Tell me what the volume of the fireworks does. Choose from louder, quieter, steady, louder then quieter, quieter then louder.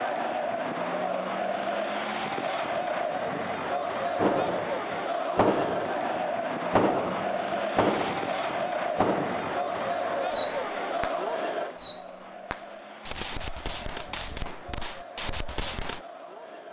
quieter.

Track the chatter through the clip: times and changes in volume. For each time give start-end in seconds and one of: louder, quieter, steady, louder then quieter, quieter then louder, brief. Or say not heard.
0.0-16.6 quieter.